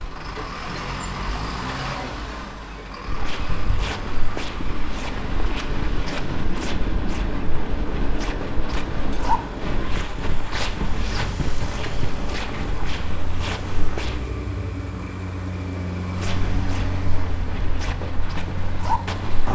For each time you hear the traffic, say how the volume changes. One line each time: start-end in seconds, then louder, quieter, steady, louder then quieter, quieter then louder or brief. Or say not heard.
0.0-19.5 steady.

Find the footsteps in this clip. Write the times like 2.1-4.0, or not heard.
3.0-14.2, 16.1-19.5.